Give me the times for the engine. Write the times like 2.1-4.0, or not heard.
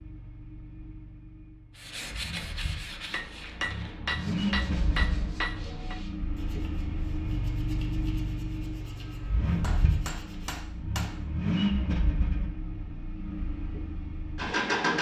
0.0-14.9.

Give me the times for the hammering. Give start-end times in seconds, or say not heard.
3.1-6.0, 9.6-11.2.